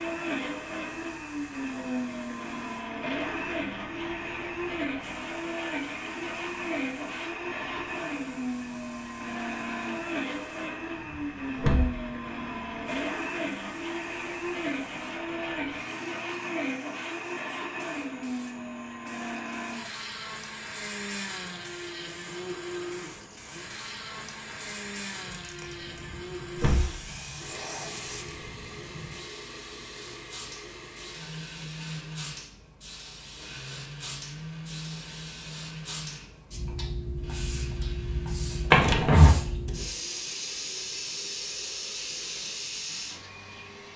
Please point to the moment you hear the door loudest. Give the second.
39 s.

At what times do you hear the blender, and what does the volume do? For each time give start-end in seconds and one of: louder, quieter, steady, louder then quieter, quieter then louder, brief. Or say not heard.
0.0-43.9 quieter.